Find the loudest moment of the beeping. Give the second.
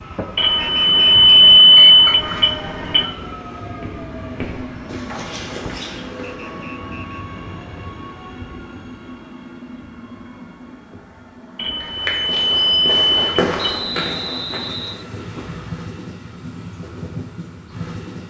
2 s.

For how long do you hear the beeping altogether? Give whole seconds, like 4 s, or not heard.
5 s.